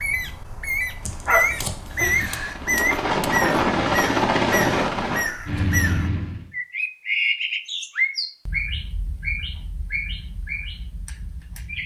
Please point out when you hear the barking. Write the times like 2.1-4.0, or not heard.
1.1-2.5.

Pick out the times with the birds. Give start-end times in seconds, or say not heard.
0.0-11.8.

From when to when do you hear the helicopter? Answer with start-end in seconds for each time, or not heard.
2.5-6.5.